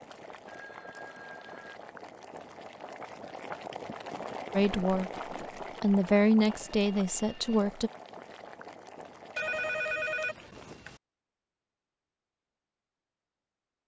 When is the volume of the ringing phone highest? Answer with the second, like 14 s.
10 s.